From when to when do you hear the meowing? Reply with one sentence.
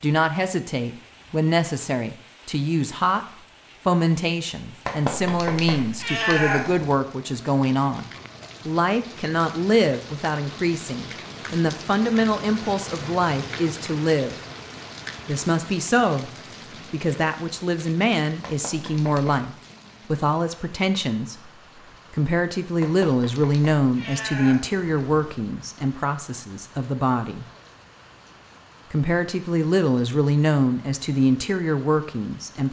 The meowing can be heard from 4.8 to 7.0 s, from 18.4 to 19.4 s and from 22.8 to 25.4 s.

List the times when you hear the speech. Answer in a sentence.
You can hear the speech from 0.0 to 3.2 s, from 3.9 to 14.3 s, from 15.2 to 16.3 s, from 16.9 to 27.4 s and from 28.9 to 32.6 s.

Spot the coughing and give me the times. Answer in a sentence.
You can't hear the coughing here.